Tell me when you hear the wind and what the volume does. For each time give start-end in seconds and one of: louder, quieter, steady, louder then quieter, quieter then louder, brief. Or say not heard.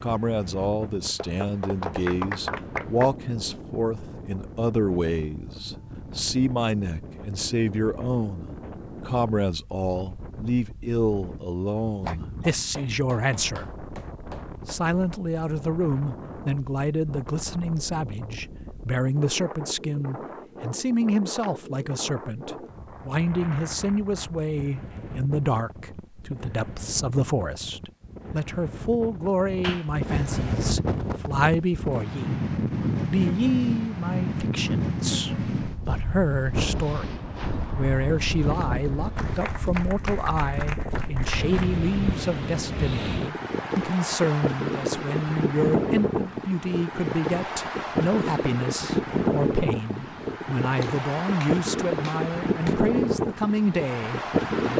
0.0-54.7 louder.